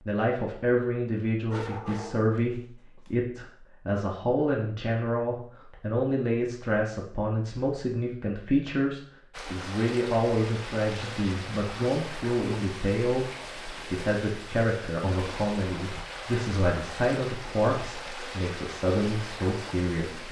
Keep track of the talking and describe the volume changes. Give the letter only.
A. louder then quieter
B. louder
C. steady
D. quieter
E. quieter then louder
C.